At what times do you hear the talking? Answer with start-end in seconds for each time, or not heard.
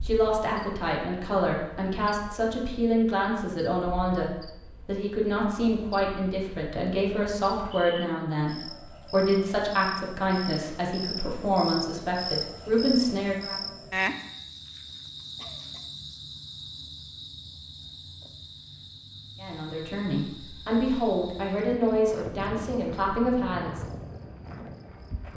0.0-13.6, 19.4-23.8.